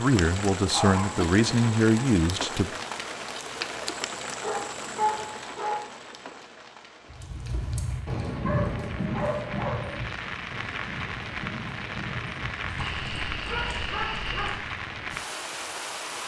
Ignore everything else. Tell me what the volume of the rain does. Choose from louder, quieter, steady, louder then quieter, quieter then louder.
quieter then louder.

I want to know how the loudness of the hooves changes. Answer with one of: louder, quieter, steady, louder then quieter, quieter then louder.
quieter.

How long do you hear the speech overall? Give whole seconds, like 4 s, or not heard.
3 s.